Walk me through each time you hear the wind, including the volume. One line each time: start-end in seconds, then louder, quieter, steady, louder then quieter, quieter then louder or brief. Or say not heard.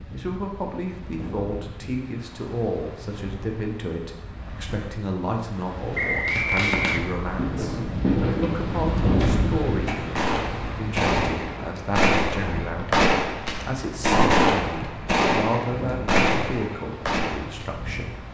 0.0-18.2 louder then quieter.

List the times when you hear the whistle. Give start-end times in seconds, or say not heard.
6.0-7.1.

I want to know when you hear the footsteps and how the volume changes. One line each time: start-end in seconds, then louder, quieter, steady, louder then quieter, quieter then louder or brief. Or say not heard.
not heard.